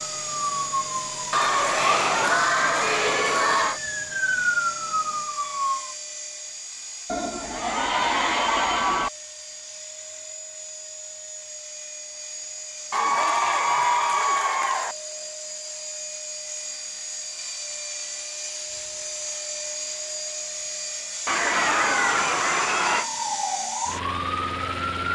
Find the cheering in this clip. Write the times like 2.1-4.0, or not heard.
1.3-3.8, 7.0-9.1, 12.9-14.9, 21.2-23.1.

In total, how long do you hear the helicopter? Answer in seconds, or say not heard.
25 s.